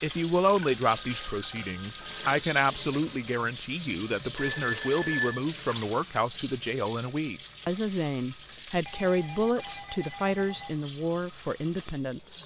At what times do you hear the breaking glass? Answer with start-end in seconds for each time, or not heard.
not heard.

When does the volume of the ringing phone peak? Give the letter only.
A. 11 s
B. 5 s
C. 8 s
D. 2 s
B.